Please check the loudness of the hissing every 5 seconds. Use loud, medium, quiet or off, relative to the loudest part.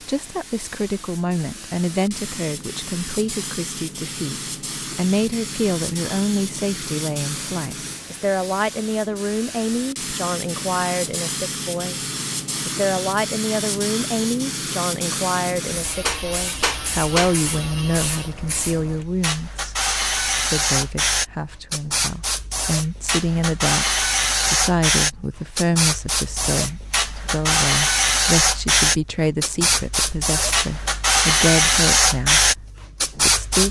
quiet, quiet, medium, medium, loud, loud, loud.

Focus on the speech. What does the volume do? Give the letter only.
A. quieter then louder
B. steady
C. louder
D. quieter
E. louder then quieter
B.